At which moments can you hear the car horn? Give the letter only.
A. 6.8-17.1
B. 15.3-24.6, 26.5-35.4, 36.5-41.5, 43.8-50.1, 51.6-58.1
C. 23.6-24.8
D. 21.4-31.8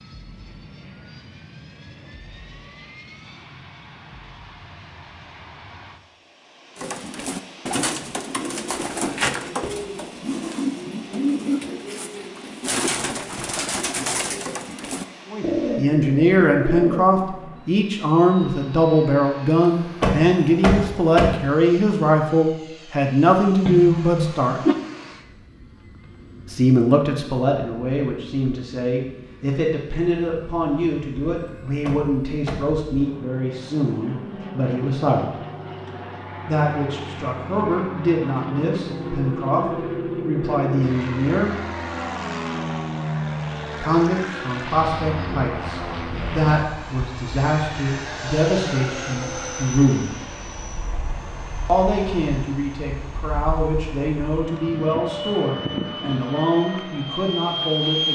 C.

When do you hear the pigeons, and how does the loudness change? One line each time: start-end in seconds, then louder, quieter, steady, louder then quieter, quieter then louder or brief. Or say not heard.
6.8-17.1 steady.